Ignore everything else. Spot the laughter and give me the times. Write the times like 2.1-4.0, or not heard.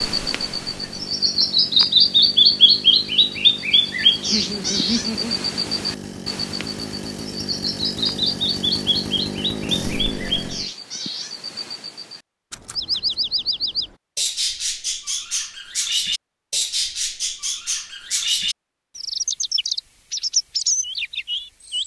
4.3-5.5.